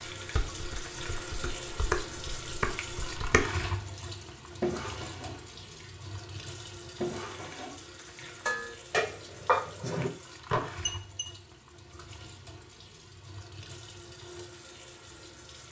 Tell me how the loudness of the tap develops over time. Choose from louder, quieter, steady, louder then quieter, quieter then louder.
quieter.